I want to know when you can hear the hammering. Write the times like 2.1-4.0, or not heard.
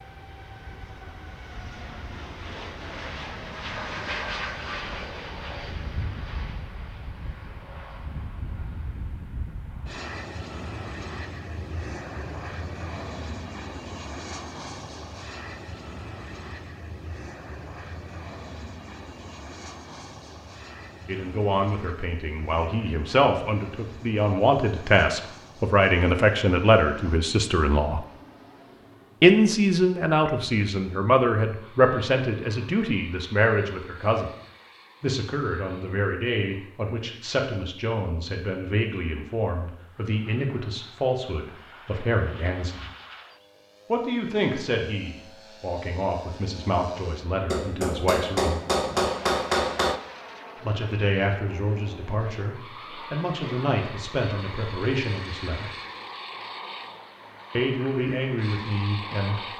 47.5-50.0.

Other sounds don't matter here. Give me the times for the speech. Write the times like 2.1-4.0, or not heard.
21.1-28.0, 29.2-34.4, 35.0-42.9, 43.9-48.6, 50.6-55.8, 57.5-59.4.